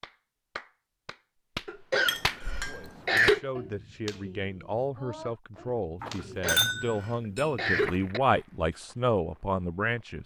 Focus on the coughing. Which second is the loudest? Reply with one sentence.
The loudest moment of the coughing is at 3 seconds.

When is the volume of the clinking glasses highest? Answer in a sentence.
The volume of the clinking glasses peaks at 7 seconds.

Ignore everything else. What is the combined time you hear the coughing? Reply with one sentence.
You can hear the coughing for 4 seconds altogether.